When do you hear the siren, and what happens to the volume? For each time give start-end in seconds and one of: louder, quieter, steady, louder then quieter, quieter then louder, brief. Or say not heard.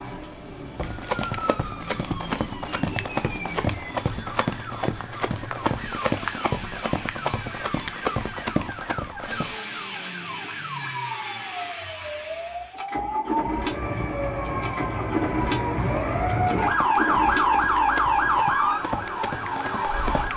0.0-20.3 louder.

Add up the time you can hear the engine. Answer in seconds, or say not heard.
20 s.